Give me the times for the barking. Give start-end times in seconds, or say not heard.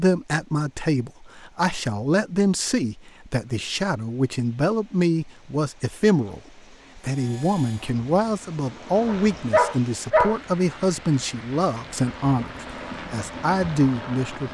9.1-10.4.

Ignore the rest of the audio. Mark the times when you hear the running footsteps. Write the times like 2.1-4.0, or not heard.
not heard.